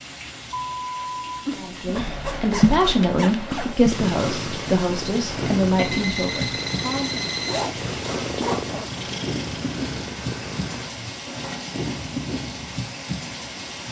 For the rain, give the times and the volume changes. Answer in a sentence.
The rain can be heard from 0.0 to 13.8 s, getting louder.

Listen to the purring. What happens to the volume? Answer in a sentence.
The volume of the purring goes down.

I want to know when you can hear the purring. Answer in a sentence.
You can hear the purring from 1.4 to 11.2 s.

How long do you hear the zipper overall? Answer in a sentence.
You can hear the zipper for 4 seconds altogether.